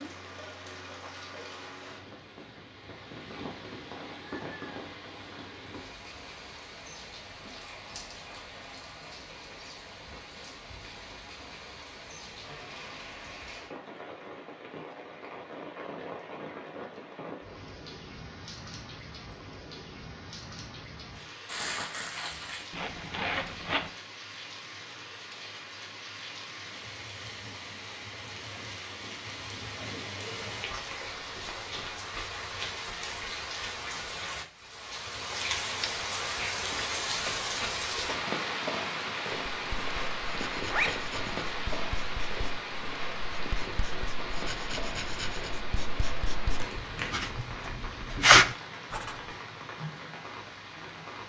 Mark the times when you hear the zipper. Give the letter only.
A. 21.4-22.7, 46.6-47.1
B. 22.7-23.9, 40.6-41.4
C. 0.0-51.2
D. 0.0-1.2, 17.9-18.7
B.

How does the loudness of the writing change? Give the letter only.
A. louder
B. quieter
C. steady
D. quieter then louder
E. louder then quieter
A.